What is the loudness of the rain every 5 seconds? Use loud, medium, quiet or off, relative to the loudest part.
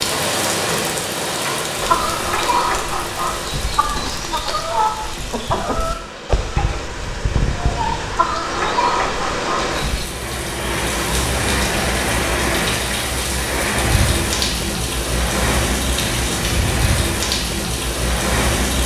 loud, medium, loud, loud.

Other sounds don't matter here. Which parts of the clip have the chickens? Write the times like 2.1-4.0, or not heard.
1.8-10.1.